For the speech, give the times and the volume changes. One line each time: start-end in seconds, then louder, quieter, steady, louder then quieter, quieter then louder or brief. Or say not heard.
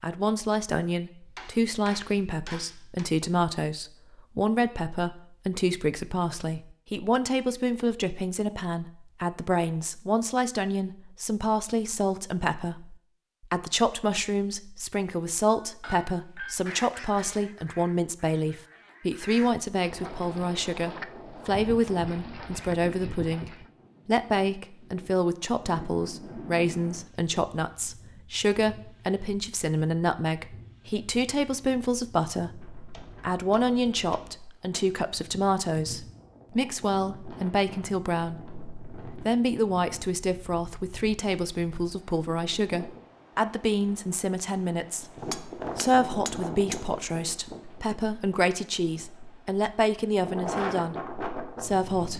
0.0-52.1 steady.